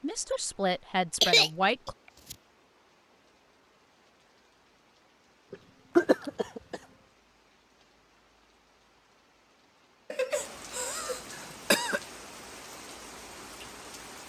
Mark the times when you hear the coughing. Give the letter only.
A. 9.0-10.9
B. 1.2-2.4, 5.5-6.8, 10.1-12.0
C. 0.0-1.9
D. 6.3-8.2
B.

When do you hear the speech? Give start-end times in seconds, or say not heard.
0.0-1.9.